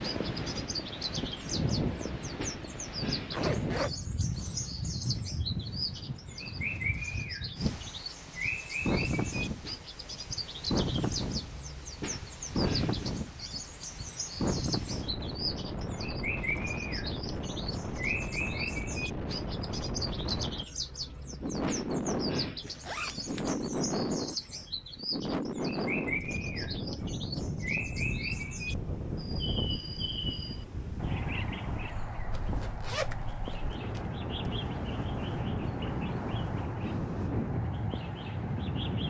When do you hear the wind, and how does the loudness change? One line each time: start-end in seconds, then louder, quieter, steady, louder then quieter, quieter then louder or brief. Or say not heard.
0.0-39.0 steady.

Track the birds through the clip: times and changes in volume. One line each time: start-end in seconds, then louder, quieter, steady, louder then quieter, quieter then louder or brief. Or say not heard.
0.0-39.0 steady.